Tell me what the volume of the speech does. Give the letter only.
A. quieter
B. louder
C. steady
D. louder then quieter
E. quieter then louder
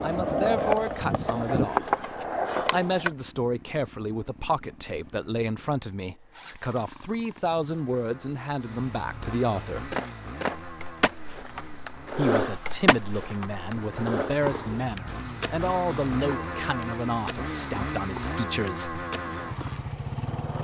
C.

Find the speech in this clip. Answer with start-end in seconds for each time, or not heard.
0.0-9.9, 12.2-19.0.